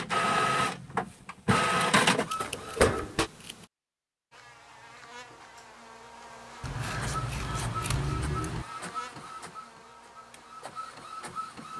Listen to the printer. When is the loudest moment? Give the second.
2 s.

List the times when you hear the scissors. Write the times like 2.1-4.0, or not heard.
2.2-3.6, 6.6-8.7.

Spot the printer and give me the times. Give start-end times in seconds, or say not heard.
0.0-3.3, 7.0-11.7.